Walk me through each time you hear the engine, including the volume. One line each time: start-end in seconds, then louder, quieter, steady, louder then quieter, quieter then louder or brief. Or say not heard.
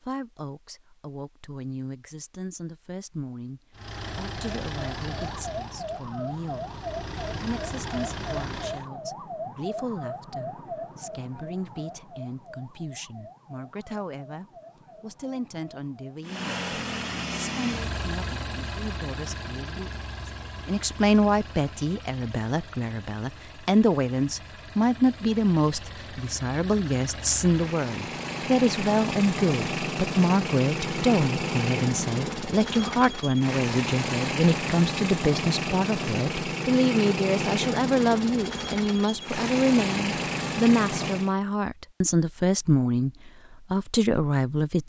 3.7-8.9 quieter then louder
16.2-41.4 quieter then louder.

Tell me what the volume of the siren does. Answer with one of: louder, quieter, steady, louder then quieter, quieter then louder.
quieter.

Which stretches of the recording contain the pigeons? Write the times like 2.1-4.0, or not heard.
not heard.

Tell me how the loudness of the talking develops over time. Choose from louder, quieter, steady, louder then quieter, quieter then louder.
louder.